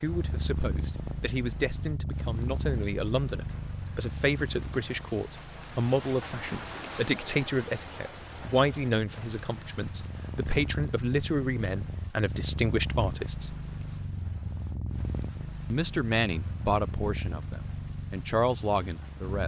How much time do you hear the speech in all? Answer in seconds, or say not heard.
17 s.